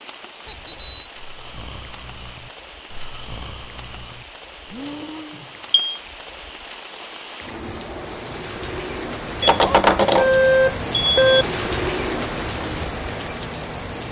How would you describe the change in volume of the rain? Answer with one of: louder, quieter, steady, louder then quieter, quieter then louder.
louder.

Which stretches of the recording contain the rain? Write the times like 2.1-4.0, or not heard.
0.0-14.0.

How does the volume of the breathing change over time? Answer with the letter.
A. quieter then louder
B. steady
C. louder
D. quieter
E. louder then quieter
C.